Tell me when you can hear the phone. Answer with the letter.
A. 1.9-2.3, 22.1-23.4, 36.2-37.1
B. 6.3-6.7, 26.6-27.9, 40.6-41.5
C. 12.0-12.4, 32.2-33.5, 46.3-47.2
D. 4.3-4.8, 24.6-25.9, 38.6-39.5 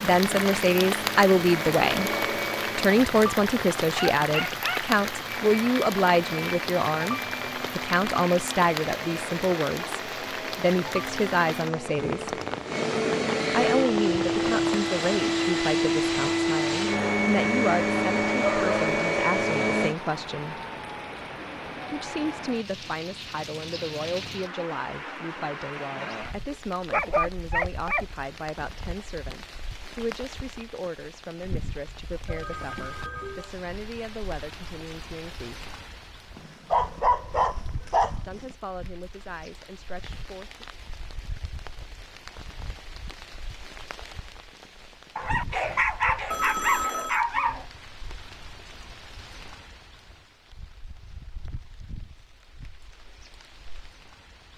C.